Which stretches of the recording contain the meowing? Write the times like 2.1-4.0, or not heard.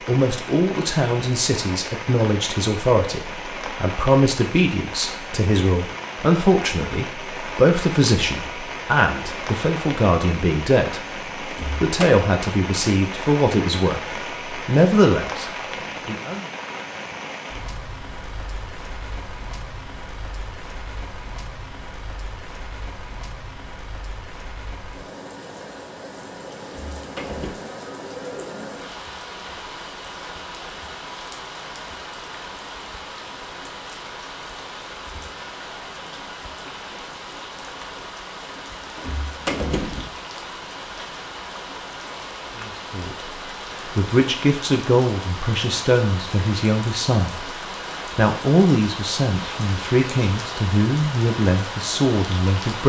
not heard.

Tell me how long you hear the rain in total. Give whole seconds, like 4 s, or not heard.
53 s.